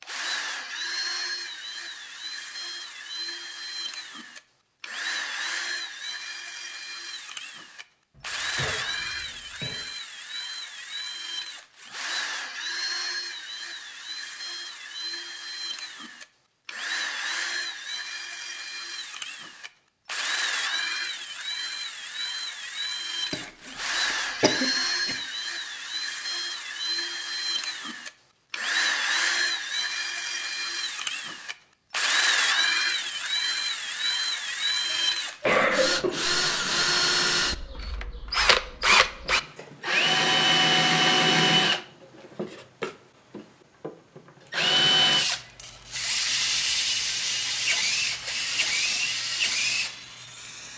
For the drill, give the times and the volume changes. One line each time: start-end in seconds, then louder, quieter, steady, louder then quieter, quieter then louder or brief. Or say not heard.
0.0-50.7 louder.